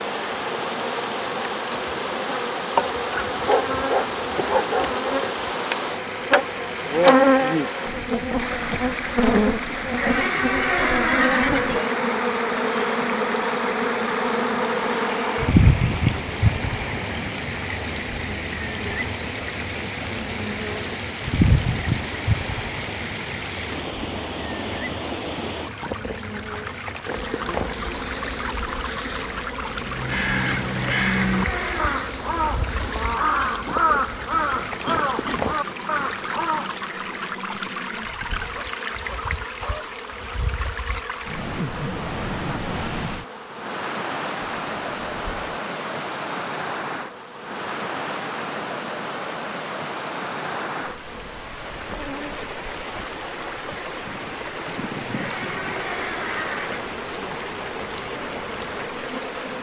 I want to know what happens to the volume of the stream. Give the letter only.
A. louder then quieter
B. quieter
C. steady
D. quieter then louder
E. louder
C.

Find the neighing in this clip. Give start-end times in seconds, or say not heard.
9.9-11.9, 31.0-32.1, 55.1-57.0.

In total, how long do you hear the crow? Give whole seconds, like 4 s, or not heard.
7 s.